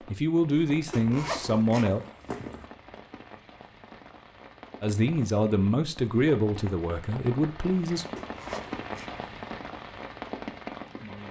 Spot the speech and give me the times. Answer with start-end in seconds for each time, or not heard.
0.1-2.0, 4.8-8.1.